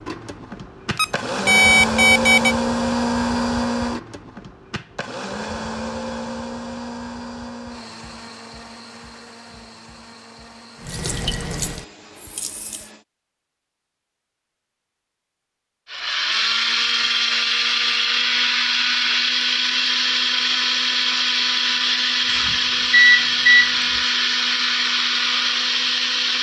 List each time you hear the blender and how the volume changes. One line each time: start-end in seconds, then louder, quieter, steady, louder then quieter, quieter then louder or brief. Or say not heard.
0.0-13.1 quieter
15.9-26.3 steady.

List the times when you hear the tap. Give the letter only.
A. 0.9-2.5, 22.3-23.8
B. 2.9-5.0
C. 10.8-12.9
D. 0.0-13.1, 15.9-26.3
C.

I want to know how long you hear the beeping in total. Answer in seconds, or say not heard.
3 s.